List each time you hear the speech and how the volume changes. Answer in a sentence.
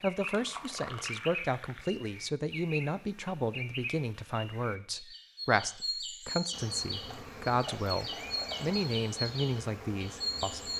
The speech can be heard from 0.0 to 10.7 s, at a steady volume.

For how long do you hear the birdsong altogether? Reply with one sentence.
You can hear the birdsong for 11 seconds altogether.